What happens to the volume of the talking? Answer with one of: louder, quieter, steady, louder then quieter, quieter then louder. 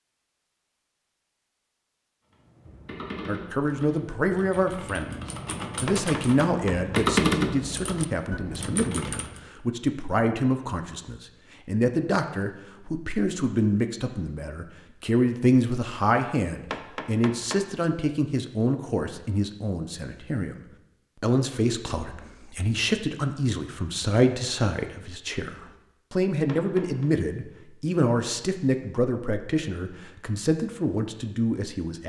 steady.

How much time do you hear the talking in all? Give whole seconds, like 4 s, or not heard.
28 s.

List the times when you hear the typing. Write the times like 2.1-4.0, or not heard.
2.3-9.4.